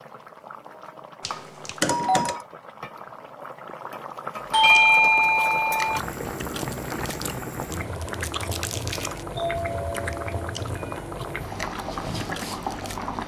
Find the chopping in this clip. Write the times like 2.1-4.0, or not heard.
not heard.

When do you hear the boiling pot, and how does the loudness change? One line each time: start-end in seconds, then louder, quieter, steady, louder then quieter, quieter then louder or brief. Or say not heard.
0.0-13.2 louder.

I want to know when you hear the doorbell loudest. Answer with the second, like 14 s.
5 s.